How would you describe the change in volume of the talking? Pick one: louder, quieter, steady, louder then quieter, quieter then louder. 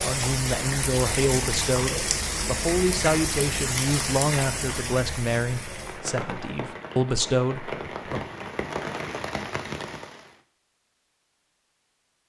steady.